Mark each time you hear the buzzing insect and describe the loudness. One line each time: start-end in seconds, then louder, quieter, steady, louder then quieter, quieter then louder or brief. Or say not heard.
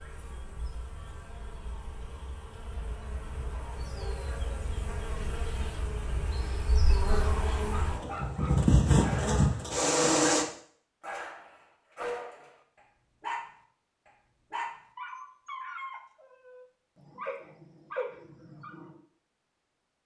0.0-10.4 louder.